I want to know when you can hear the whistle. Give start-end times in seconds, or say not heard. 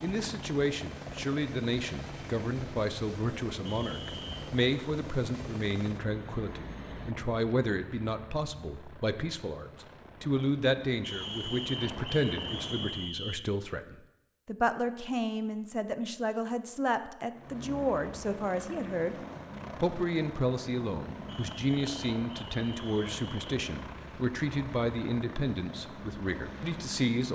3.6-4.5, 11.0-13.5, 21.2-23.5.